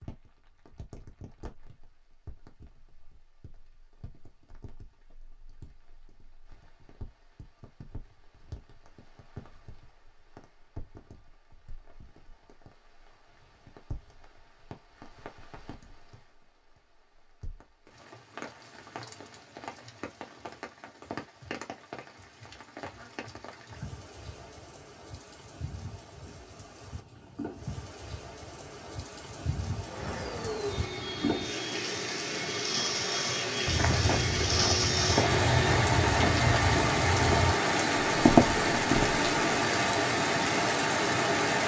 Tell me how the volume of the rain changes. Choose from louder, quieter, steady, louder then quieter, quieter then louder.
louder.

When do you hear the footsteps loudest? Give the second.
38 s.